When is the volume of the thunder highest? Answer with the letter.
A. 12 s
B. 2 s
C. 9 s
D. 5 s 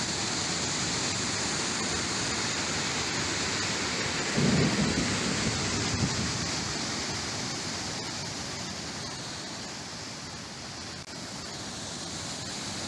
D.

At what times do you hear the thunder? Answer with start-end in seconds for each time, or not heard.
4.3-6.2.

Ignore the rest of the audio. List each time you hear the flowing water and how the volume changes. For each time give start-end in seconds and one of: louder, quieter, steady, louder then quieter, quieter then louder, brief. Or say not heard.
0.0-12.8 quieter.